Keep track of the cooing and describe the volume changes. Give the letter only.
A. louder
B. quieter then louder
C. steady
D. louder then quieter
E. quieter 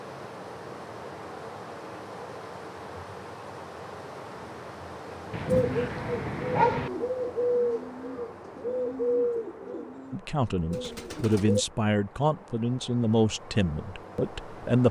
D.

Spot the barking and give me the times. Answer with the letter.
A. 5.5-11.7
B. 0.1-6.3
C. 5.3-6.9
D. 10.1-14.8
C.